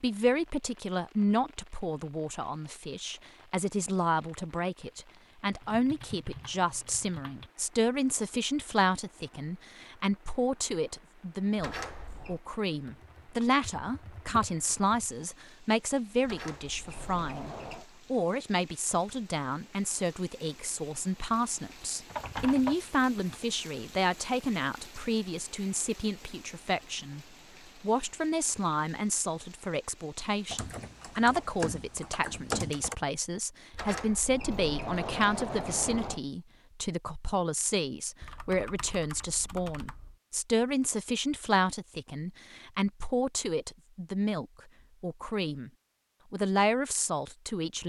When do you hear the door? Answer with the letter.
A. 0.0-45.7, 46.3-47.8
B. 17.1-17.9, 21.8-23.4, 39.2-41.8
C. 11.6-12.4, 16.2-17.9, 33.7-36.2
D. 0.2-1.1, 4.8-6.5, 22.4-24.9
C.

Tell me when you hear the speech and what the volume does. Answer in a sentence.
You can hear the speech from 0.0 to 45.7 s, at a steady volume; and briefly from 46.3 to 47.8 s.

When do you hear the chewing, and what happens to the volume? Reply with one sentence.
The chewing can't be heard in this clip.